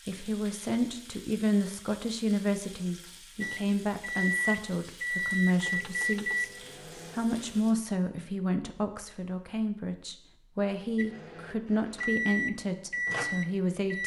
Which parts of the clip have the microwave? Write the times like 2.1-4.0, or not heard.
3.4-7.6, 10.9-14.0.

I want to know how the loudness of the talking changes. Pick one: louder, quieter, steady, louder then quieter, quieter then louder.
steady.